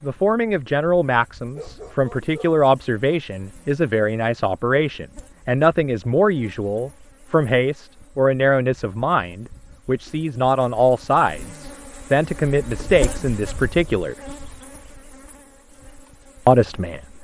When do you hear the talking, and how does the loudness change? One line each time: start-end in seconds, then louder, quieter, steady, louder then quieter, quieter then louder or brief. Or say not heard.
0.0-14.2 steady
16.4-17.1 brief.